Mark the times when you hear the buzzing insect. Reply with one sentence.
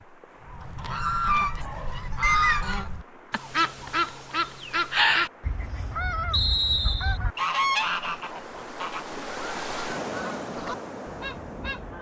You can't hear the buzzing insect here.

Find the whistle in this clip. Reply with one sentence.
The whistle can be heard from 2.2 to 2.9 s and from 6.3 to 7.2 s.